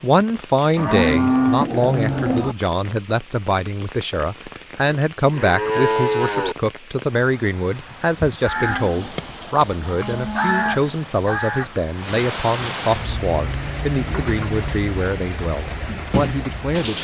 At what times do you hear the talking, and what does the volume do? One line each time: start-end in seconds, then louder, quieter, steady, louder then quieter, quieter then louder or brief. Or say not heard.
0.0-16.9 steady.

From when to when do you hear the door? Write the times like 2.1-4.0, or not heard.
not heard.